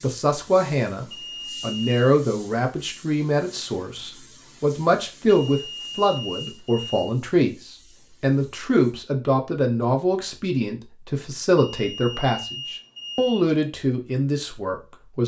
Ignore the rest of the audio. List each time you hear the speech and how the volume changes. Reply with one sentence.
You can hear the speech from 0.0 to 15.2 s, at a steady volume.